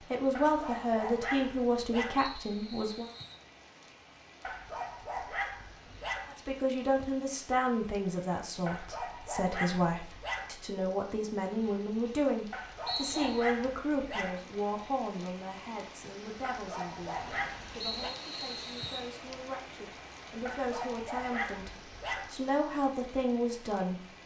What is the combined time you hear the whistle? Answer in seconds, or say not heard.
3 s.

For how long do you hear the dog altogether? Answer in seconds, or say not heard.
11 s.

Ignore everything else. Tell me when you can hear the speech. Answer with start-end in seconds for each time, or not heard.
0.0-3.1, 6.2-24.1.